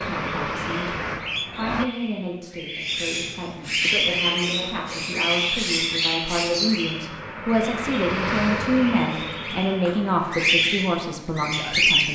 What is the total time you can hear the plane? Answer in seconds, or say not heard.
8 s.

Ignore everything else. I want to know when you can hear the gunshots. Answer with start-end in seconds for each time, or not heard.
not heard.